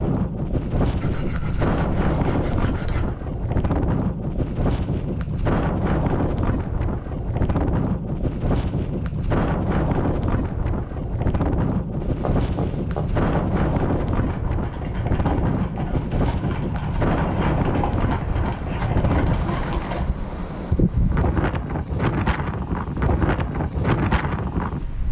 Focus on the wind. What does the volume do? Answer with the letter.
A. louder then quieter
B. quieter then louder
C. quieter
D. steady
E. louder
D.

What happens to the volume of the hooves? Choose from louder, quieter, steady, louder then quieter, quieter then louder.
louder.